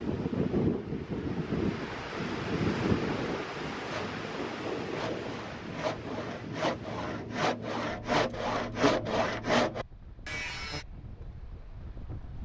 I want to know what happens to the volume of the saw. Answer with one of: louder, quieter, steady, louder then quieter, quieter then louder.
louder.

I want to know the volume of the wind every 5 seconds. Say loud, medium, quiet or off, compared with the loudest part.
loud, medium, quiet.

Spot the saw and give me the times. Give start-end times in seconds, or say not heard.
3.9-10.8.